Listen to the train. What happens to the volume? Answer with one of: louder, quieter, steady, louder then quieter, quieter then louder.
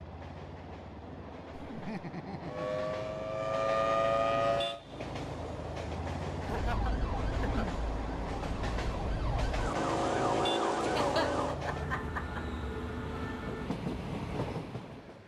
louder.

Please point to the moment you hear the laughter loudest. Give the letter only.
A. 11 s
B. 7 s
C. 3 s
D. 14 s
A.